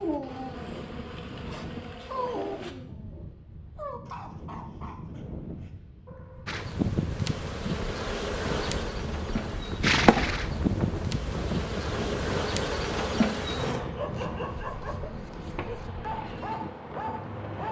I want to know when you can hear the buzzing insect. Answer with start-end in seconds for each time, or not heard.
0.0-2.8, 6.5-17.6.